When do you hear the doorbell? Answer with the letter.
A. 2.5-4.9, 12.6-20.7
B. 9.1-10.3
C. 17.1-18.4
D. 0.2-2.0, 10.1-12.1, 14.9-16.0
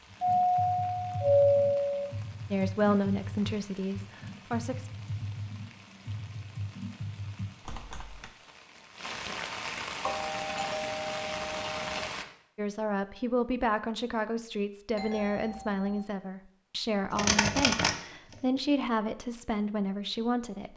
D.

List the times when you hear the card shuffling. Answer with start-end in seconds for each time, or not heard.
17.1-18.4.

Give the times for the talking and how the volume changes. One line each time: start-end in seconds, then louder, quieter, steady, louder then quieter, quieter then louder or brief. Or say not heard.
2.5-4.9 brief
12.6-20.7 steady.